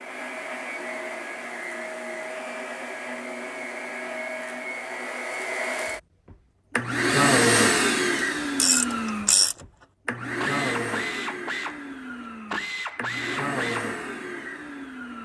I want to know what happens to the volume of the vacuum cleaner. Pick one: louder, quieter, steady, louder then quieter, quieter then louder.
louder then quieter.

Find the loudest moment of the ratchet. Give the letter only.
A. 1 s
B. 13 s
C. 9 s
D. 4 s
C.